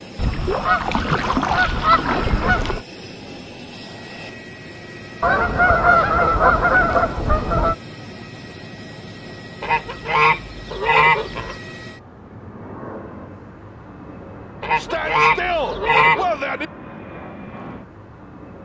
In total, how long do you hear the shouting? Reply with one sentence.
The shouting can be heard for 2 seconds in total.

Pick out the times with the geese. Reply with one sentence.
You can hear the geese from 0.1 to 2.8 s, from 5.2 to 7.8 s, from 9.6 to 11.6 s and from 14.6 to 16.3 s.